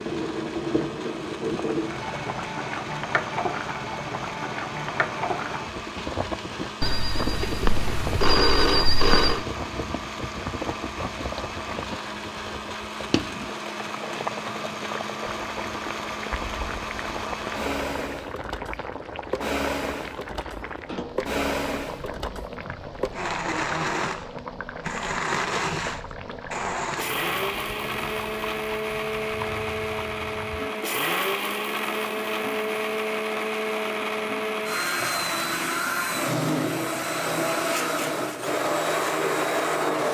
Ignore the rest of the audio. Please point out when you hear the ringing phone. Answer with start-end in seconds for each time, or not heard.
6.8-9.4.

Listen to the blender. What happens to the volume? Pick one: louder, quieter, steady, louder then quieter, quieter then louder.
louder.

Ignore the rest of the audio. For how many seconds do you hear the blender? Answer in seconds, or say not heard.
40 s.